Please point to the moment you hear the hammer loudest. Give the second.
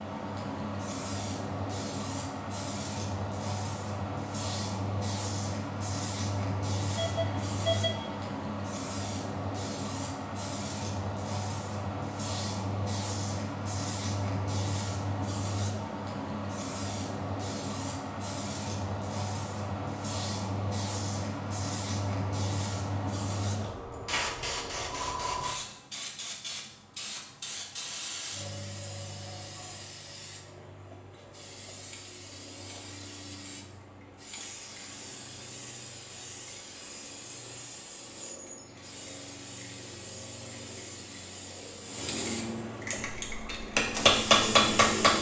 44 s.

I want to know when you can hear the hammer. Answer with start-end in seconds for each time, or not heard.
43.0-45.1.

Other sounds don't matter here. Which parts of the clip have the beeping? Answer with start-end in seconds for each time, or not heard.
7.0-8.3.